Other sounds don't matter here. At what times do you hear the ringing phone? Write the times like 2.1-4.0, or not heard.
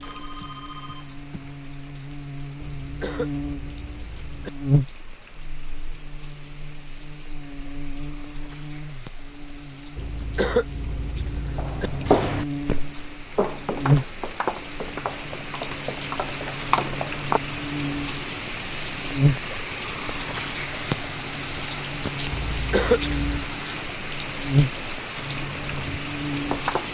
0.0-1.6.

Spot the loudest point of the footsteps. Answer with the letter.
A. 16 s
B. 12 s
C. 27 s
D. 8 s
B.